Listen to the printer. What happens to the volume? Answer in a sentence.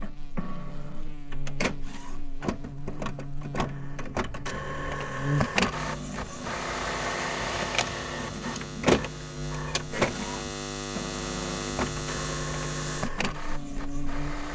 The loudness of the printer goes up, then down.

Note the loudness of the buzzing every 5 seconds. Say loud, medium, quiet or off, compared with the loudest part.
medium, loud, loud.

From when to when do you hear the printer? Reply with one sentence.
The printer can be heard from 0.0 to 14.5 s.